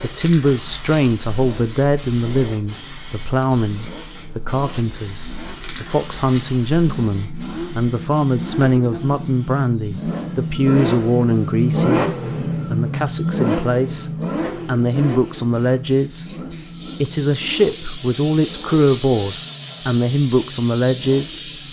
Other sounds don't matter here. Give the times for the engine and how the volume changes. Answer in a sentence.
The engine can be heard from 0.0 to 21.6 s, getting louder then quieter.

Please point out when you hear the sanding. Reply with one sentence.
You can't hear the sanding here.